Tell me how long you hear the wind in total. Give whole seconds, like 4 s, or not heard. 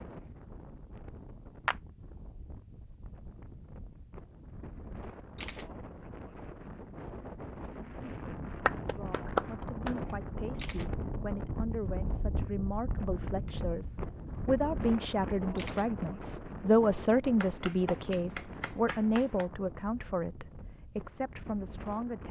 22 s.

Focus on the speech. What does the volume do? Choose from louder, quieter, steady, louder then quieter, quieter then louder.
louder then quieter.